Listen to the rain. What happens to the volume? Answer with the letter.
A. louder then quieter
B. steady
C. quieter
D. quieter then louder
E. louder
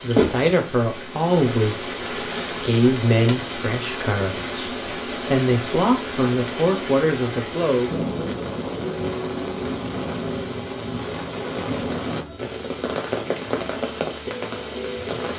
B.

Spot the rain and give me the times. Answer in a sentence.
The rain can be heard from 0.0 to 15.3 s.